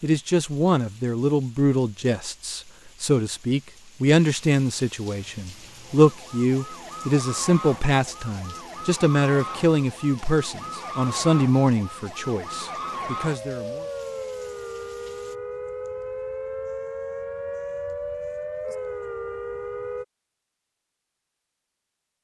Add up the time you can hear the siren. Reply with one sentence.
The siren can be heard for 15 seconds in total.